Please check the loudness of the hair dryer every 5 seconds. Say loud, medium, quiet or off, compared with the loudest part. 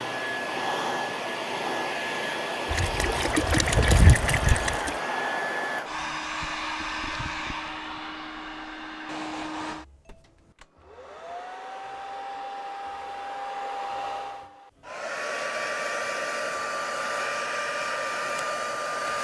loud, loud, medium, loud.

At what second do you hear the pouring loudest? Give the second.
4 s.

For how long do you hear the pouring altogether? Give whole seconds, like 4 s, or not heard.
2 s.